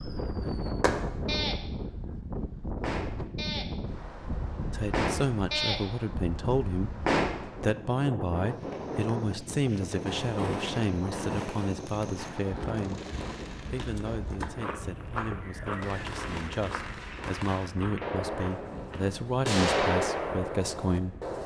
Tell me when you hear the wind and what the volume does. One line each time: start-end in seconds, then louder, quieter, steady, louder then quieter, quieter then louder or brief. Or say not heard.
0.0-21.4 quieter.